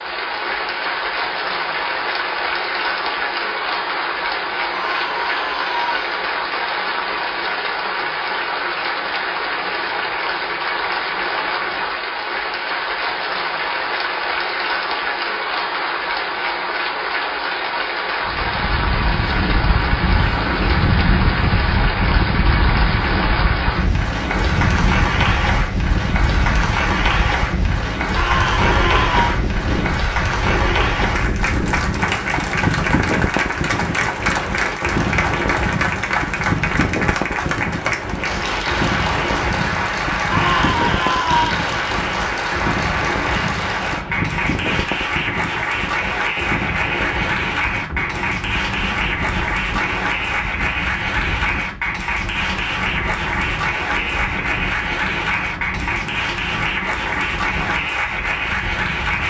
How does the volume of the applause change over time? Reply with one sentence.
The loudness of the applause stays about the same.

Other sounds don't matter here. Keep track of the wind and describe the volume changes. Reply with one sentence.
The volume of the wind goes down.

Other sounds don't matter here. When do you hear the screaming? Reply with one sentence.
You can hear the screaming from 4.7 to 6.2 s, from 28.1 to 29.4 s and from 40.3 to 41.6 s.